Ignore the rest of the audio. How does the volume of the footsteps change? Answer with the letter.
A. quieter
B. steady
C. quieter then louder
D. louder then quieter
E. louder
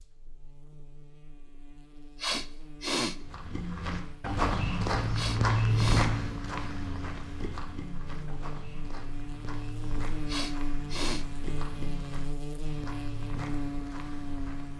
A.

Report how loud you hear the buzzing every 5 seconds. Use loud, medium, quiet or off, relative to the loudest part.
quiet, medium, loud.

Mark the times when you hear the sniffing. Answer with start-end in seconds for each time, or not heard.
2.2-3.1, 5.1-6.1, 10.2-11.2.